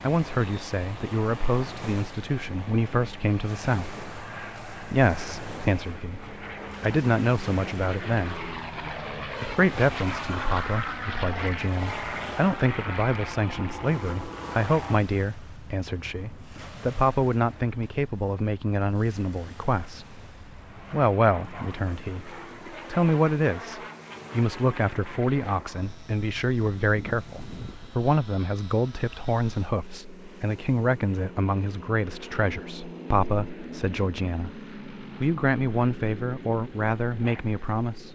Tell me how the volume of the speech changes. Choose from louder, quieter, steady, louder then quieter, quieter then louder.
steady.